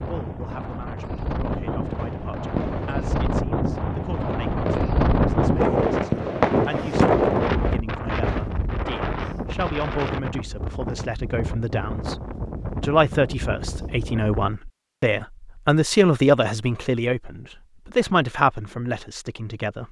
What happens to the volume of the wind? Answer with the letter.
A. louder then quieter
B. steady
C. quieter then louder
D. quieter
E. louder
A.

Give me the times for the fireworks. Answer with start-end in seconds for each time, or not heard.
1.6-8.6.